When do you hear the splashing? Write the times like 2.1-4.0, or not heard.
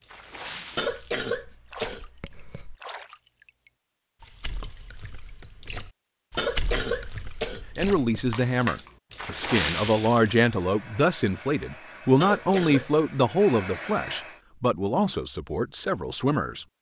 0.0-10.4.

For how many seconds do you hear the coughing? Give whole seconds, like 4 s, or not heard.
5 s.